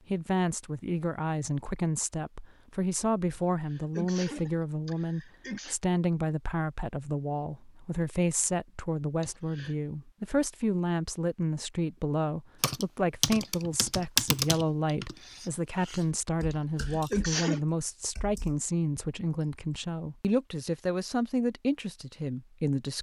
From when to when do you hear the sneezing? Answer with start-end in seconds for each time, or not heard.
3.3-5.8, 9.2-9.8, 16.5-17.6.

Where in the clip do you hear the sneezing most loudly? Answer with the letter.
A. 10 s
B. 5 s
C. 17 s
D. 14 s
C.